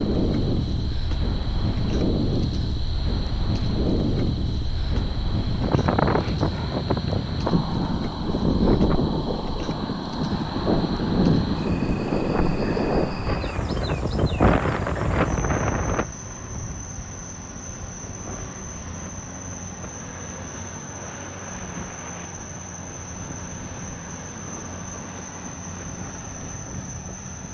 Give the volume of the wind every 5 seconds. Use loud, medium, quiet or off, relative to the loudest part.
loud, loud, loud, medium, quiet, quiet.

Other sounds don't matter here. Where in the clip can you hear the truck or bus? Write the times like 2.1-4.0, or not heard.
10.2-27.4.